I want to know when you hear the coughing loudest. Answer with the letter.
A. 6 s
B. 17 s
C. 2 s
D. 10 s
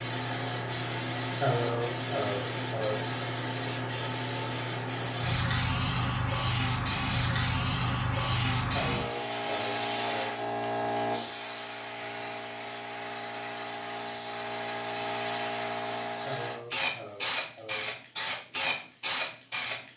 C.